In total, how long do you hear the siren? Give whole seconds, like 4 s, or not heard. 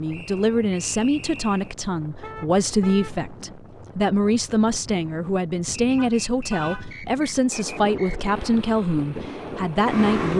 not heard.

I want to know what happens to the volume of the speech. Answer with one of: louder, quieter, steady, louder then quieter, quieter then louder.
steady.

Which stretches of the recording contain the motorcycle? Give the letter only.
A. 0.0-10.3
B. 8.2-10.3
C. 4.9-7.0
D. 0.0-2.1
B.